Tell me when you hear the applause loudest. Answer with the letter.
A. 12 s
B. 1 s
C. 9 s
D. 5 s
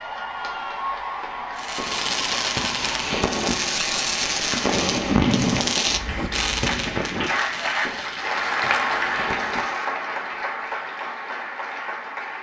C.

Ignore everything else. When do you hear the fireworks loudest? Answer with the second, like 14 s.
5 s.